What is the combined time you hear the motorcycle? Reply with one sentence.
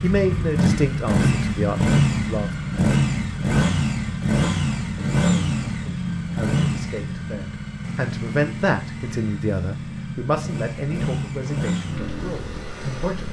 You can hear the motorcycle for 13 seconds altogether.